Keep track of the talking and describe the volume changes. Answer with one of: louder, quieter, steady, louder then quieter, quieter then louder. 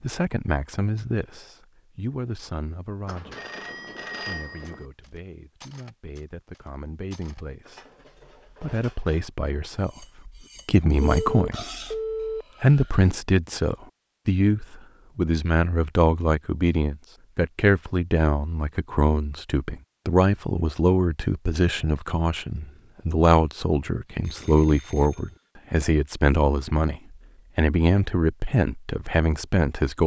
louder.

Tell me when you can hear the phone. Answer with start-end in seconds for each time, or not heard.
3.0-4.8, 11.0-12.4, 24.2-25.3.